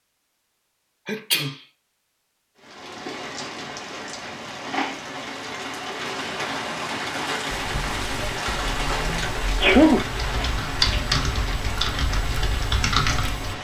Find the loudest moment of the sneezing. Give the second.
10 s.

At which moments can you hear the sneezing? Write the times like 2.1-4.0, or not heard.
1.1-1.5, 8.9-10.1.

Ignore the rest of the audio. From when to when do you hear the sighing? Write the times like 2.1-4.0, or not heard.
not heard.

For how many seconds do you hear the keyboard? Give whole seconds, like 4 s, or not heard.
6 s.